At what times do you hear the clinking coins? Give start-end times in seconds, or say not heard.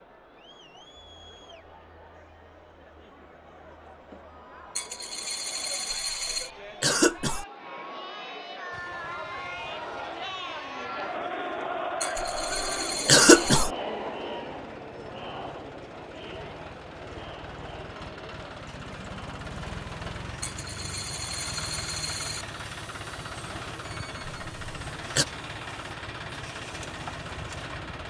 4.8-6.5, 12.0-13.7, 20.4-22.4.